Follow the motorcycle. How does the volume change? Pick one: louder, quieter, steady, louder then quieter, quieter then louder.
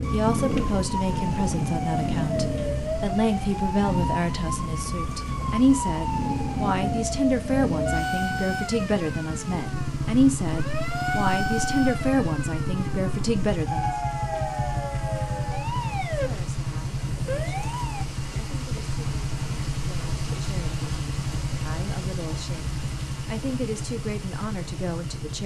steady.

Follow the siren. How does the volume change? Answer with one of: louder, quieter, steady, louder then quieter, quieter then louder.
steady.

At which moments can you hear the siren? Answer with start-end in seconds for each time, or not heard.
0.0-18.1.